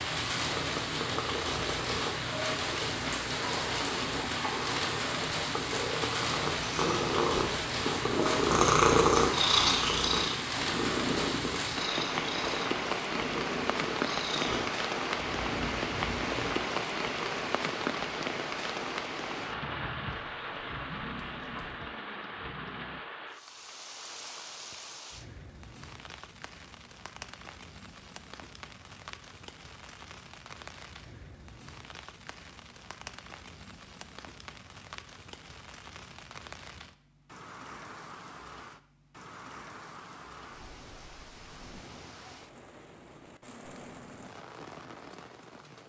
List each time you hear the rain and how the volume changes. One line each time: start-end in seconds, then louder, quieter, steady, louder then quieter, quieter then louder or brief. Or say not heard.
0.0-45.8 quieter.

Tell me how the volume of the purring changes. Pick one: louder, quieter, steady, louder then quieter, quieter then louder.
louder then quieter.